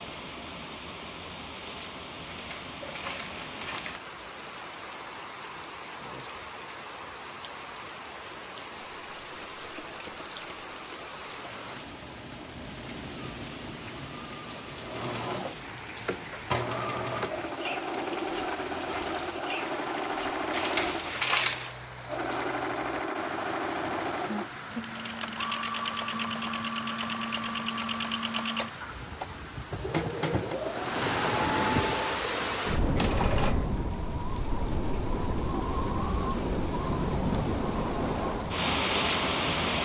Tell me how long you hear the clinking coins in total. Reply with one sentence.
You can hear the clinking coins for 3 seconds altogether.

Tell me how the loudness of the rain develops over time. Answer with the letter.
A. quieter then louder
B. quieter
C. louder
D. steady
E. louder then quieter
C.